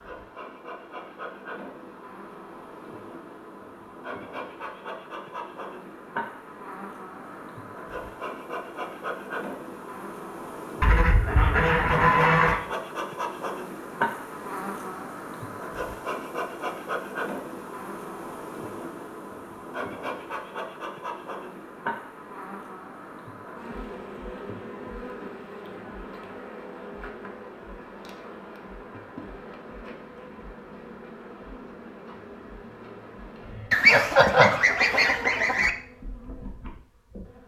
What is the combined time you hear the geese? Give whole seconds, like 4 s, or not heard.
4 s.